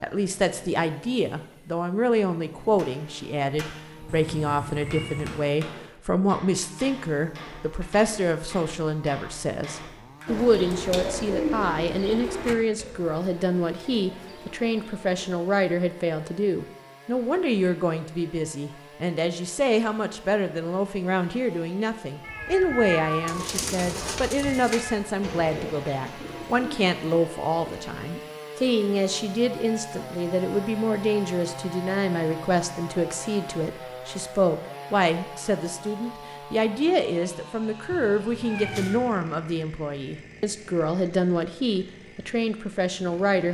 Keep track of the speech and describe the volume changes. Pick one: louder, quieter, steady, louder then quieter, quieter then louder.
steady.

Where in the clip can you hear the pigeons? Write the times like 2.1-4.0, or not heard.
10.2-15.4, 23.2-28.2.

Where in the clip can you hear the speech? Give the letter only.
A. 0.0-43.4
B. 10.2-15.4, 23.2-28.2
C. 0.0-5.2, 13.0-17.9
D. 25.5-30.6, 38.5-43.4
A.